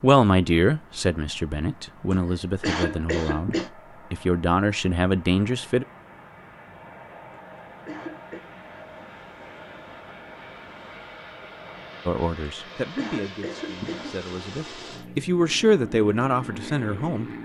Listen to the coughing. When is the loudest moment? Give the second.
3 s.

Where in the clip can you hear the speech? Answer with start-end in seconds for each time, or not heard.
0.0-5.8, 12.1-17.3.